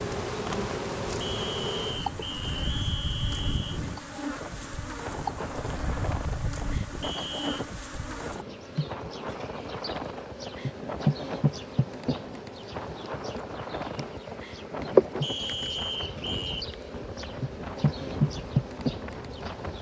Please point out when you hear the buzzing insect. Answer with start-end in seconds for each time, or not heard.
0.0-19.7.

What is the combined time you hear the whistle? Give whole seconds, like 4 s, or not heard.
5 s.